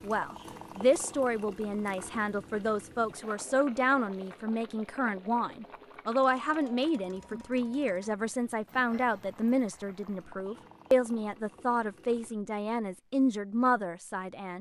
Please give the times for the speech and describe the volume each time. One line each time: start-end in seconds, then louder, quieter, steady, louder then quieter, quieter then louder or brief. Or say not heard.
0.0-14.5 steady.